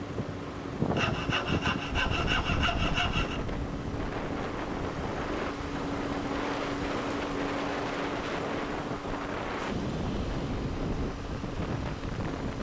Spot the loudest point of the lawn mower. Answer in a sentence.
The volume of the lawn mower peaks at 7 seconds.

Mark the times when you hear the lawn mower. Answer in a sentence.
You can hear the lawn mower from 0.0 to 12.5 s.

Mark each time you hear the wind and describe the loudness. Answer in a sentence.
You can hear the wind from 0.0 to 12.5 s, at a steady volume.